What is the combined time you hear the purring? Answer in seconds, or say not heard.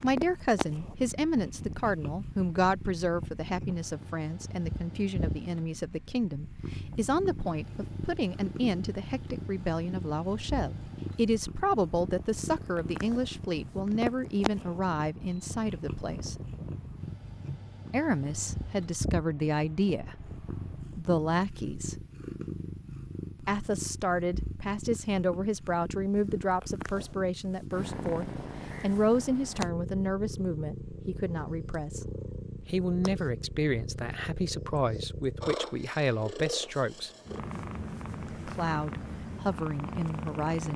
41 s.